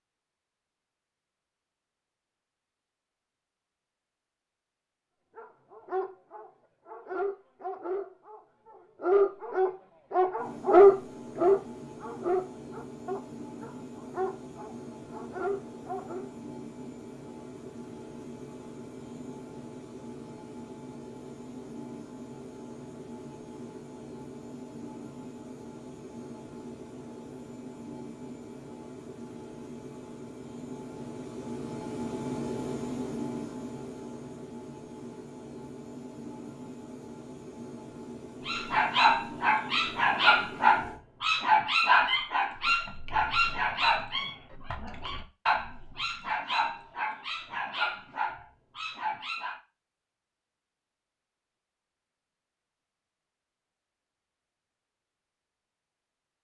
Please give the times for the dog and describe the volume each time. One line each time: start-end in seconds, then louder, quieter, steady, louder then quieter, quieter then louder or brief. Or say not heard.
5.3-16.3 louder then quieter
38.5-49.6 quieter.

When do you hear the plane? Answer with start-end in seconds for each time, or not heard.
10.3-41.0.